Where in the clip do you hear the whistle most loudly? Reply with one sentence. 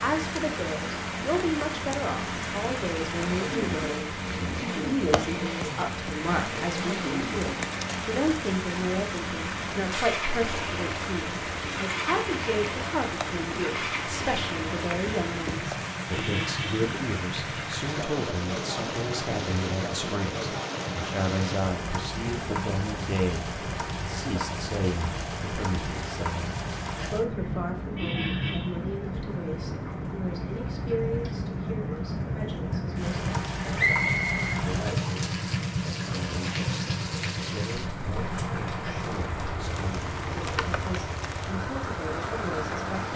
The volume of the whistle peaks at 34 seconds.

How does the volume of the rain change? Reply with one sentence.
The volume of the rain stays about the same.